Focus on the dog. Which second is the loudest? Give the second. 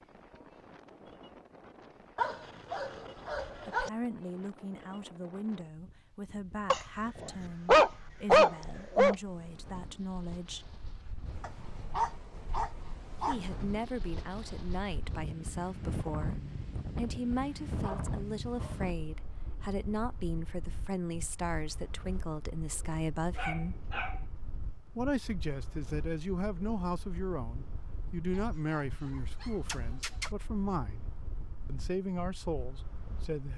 8 s.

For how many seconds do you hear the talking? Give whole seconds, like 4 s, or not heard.
26 s.